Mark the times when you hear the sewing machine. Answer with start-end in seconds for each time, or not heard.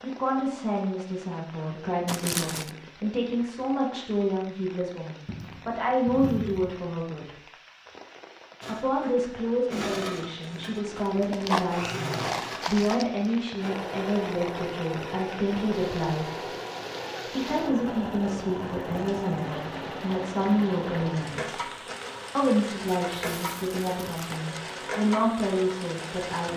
8.6-26.5.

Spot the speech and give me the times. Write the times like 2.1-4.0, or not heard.
0.0-7.3, 8.7-16.4, 17.2-21.7, 22.4-26.5.